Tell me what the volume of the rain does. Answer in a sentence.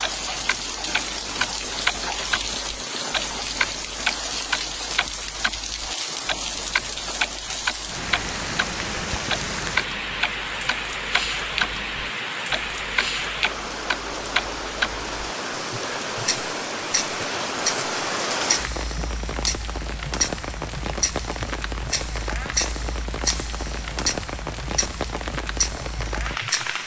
The loudness of the rain stays about the same.